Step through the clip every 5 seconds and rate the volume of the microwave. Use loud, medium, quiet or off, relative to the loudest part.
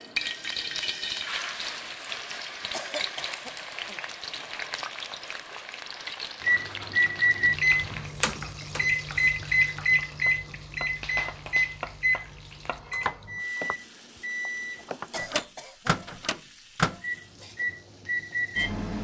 off, loud, medium, medium.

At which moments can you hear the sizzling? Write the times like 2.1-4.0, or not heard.
0.0-18.9.